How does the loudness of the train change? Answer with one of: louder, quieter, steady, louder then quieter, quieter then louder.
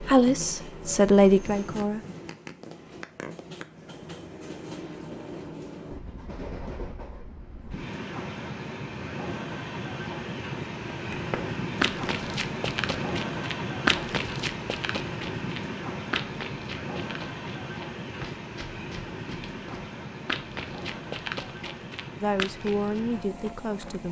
louder then quieter.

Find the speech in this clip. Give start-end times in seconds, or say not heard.
0.0-2.0, 22.2-24.0.